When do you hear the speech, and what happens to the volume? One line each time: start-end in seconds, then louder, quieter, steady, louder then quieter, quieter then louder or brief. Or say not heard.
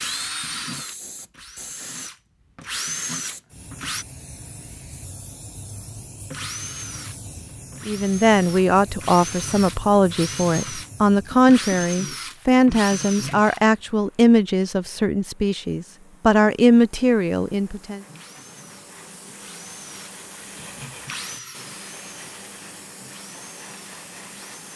7.8-18.0 steady.